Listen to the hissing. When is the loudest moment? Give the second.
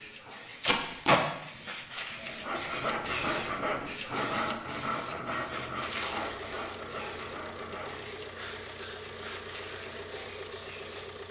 3 s.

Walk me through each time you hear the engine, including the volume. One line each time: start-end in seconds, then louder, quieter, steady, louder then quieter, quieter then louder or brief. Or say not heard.
5.8-11.2 steady.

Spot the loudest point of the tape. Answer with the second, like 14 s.
1 s.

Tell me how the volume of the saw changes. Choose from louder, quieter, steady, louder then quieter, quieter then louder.
quieter.